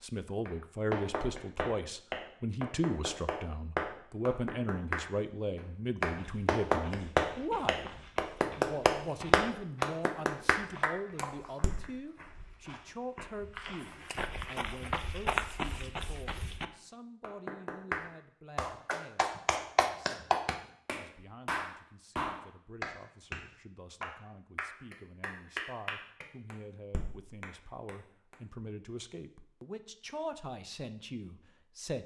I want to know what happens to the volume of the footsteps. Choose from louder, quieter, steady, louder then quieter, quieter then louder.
louder.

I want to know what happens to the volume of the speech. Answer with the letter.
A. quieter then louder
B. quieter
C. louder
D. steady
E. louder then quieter
A.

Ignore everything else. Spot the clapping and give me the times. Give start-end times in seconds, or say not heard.
0.5-11.8, 17.2-23.4, 24.0-28.4.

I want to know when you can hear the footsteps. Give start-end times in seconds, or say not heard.
6.2-16.6.